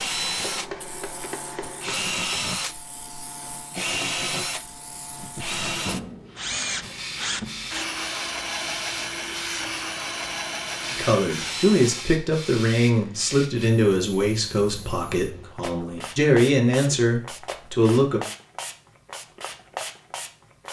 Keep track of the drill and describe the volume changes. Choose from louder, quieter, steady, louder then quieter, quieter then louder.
steady.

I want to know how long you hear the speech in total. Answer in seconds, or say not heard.
7 s.